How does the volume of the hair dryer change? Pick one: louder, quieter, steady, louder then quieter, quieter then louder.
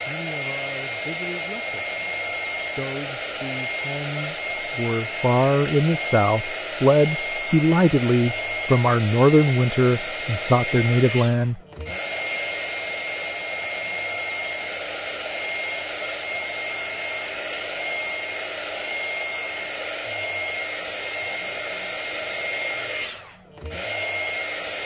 steady.